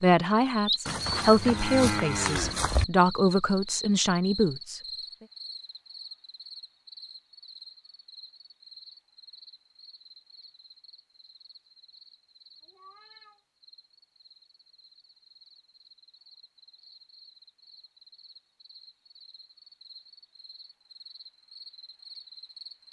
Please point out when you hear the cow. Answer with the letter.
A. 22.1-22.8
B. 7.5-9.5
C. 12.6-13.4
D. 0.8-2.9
D.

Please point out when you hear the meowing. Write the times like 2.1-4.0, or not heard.
12.6-13.4.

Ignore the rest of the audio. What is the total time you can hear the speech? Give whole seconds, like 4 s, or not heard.
5 s.